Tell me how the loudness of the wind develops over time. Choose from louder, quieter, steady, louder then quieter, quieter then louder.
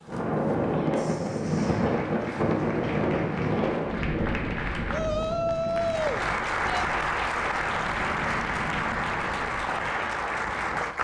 quieter.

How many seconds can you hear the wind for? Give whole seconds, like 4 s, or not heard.
11 s.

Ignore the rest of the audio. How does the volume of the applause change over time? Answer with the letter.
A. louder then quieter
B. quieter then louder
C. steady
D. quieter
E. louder
E.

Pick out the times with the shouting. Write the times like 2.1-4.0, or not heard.
4.9-6.9.